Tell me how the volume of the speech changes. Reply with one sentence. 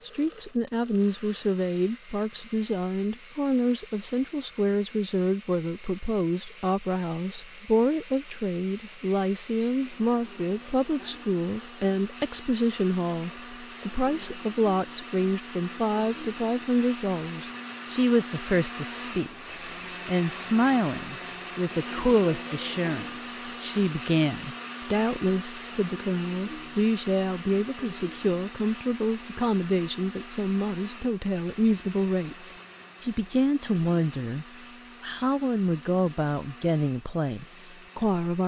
The loudness of the speech stays about the same.